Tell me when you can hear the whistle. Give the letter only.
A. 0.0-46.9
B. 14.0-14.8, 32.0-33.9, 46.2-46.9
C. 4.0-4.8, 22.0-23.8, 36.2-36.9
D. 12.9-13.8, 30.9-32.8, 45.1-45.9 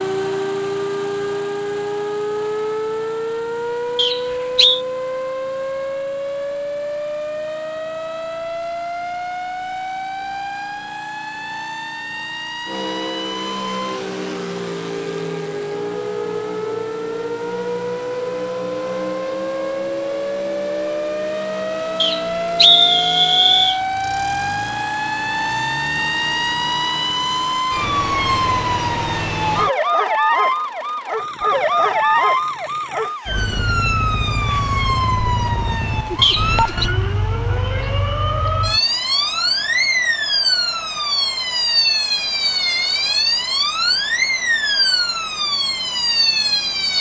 C.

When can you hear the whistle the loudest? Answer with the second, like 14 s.
23 s.